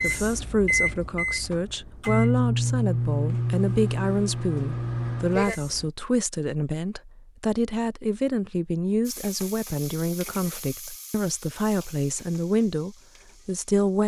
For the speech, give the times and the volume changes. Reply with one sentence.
The speech can be heard from 0.0 to 14.0 s, at a steady volume.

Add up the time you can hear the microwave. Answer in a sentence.
You can hear the microwave for 6 seconds altogether.